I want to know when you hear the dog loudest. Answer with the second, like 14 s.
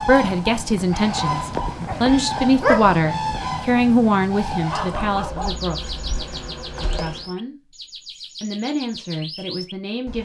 3 s.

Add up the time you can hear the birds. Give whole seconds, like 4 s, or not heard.
10 s.